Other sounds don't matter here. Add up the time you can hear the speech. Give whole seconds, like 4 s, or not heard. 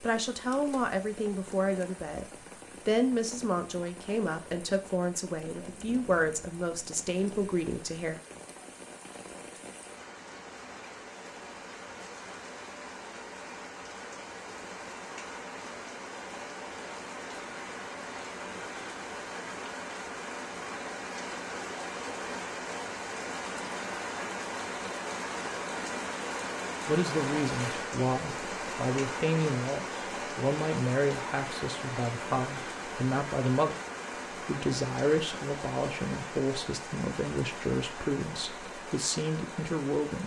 21 s.